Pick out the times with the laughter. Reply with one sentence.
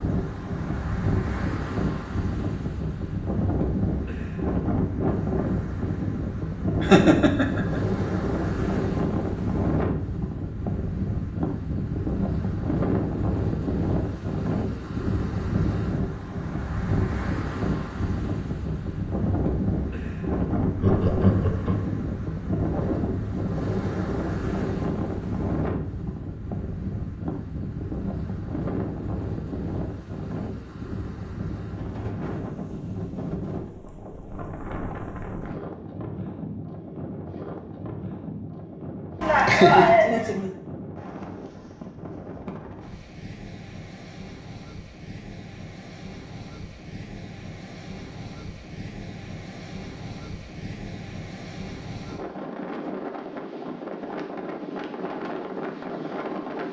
The laughter can be heard from 6.8 to 7.8 s, from 20.8 to 21.8 s and from 39.2 to 40.5 s.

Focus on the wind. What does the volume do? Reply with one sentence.
The volume of the wind goes down.